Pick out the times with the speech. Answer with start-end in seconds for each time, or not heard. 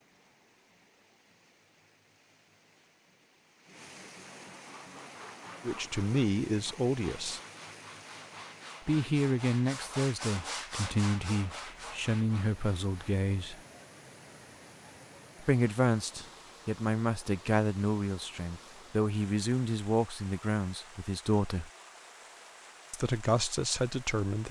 5.7-7.4, 8.8-13.6, 15.4-21.7, 22.9-24.4.